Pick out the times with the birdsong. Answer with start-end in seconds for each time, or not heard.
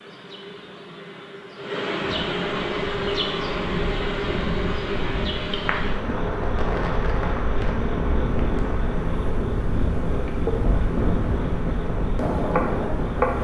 not heard.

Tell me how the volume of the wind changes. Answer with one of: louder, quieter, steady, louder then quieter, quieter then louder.
louder.